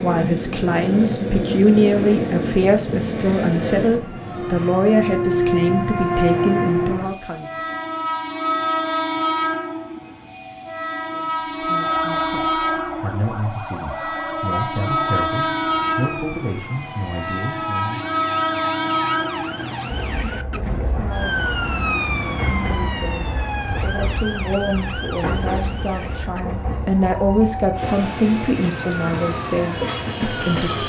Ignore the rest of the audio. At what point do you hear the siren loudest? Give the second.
22 s.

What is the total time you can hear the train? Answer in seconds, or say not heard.
31 s.